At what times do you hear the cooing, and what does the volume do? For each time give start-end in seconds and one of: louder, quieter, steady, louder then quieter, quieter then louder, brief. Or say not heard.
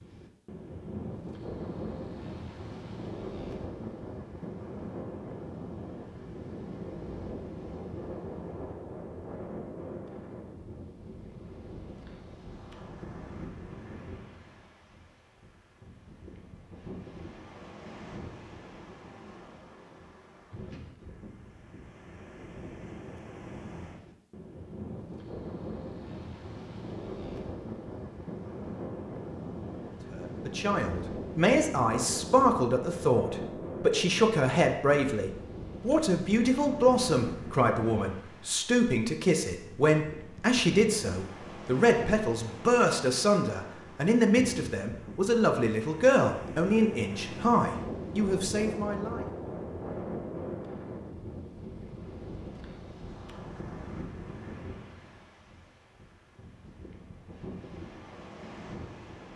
not heard.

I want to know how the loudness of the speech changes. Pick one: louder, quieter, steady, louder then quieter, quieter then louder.
steady.